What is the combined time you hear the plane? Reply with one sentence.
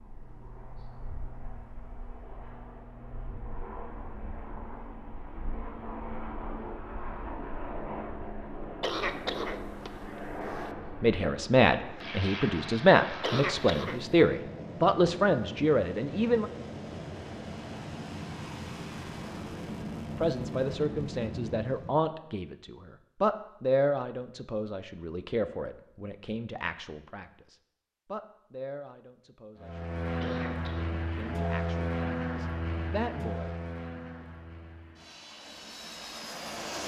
You can hear the plane for 29 seconds altogether.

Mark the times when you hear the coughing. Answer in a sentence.
You can hear the coughing from 8.8 to 10.7 s, from 13.2 to 14.1 s and from 30.2 to 30.9 s.